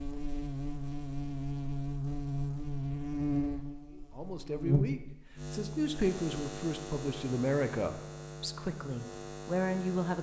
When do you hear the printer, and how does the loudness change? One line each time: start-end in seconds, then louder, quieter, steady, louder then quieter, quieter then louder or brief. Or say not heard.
not heard.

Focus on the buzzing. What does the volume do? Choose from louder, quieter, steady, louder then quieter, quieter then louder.
quieter.